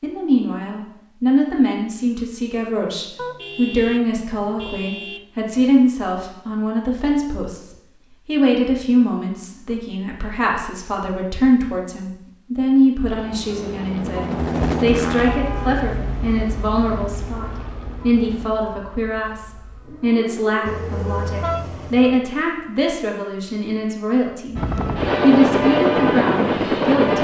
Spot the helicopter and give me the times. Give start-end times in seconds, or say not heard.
13.1-18.4, 24.6-27.1.